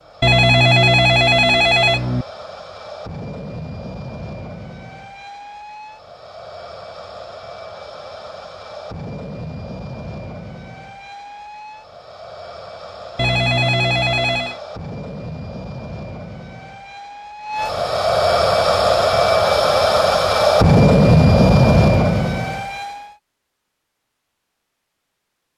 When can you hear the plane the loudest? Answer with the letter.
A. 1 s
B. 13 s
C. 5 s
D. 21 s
D.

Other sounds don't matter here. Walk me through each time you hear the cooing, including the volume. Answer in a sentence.
You can't hear the cooing here.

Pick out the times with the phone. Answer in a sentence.
The phone can be heard from 0.2 to 2.2 s and from 13.2 to 14.6 s.